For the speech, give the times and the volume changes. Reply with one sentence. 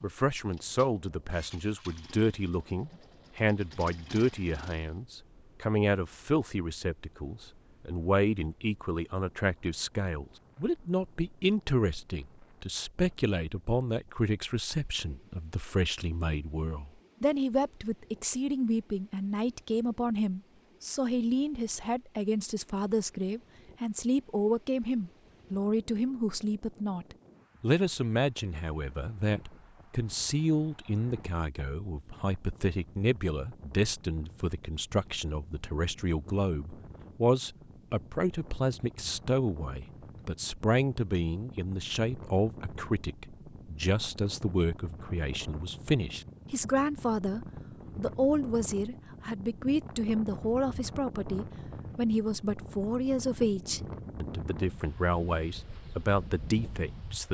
The speech can be heard from 0.0 to 57.2 s, at a steady volume.